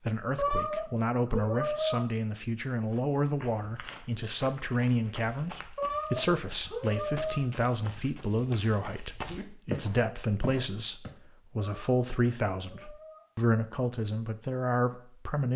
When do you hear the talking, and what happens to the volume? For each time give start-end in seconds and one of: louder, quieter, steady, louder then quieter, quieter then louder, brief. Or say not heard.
0.1-15.5 steady.